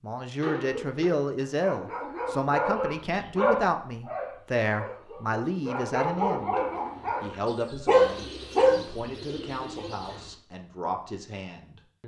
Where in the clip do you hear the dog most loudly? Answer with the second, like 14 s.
8 s.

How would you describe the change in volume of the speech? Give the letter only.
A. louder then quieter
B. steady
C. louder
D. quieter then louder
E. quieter
E.